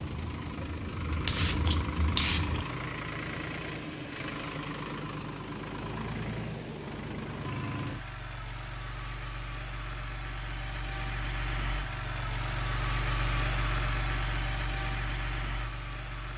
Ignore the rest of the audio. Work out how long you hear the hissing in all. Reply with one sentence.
You can hear the hissing for 3 seconds altogether.